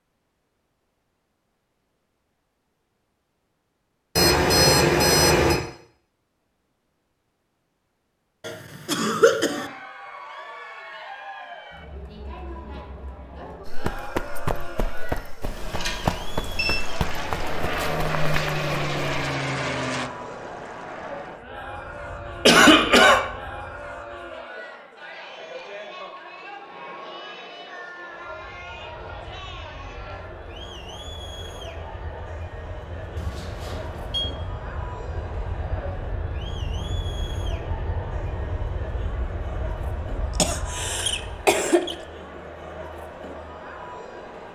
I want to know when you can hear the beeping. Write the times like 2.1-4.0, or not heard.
4.2-5.6, 15.4-16.8, 33.1-34.2.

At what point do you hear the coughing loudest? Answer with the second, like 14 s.
23 s.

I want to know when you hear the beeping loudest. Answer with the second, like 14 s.
5 s.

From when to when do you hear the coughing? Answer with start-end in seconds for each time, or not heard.
8.4-9.7, 22.4-23.3, 40.4-42.0.